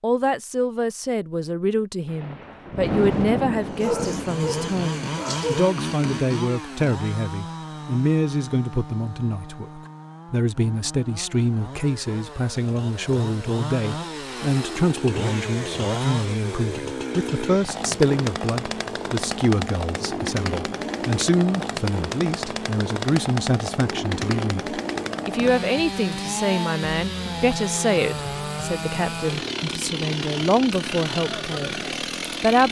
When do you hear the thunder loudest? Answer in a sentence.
The loudest moment of the thunder is at 3 seconds.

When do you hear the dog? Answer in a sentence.
You can hear the dog from 3.8 to 5.7 s.